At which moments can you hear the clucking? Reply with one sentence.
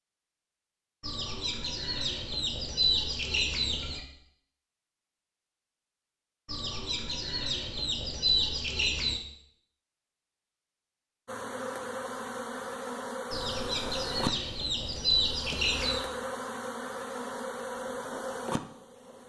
You can hear the clucking from 1.0 to 4.0 s, from 6.5 to 9.2 s and from 13.3 to 16.1 s.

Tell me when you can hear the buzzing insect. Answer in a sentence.
The buzzing insect can be heard from 11.2 to 19.2 s.